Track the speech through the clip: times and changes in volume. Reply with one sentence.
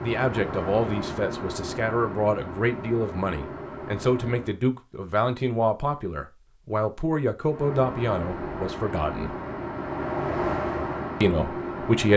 The speech can be heard from 0.0 to 9.3 s, at a steady volume; and briefly from 11.2 to 12.1 s.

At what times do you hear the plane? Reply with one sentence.
The plane can be heard from 0.0 to 4.5 s and from 7.5 to 12.1 s.